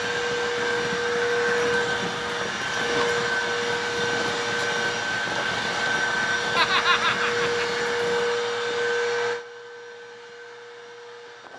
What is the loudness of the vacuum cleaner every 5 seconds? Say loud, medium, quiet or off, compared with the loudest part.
loud, loud, quiet.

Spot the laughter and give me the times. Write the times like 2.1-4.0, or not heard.
6.5-7.5.